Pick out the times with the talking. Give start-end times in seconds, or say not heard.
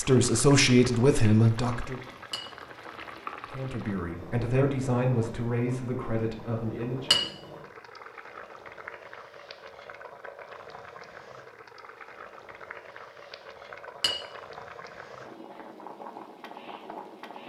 0.0-2.0, 3.5-7.2.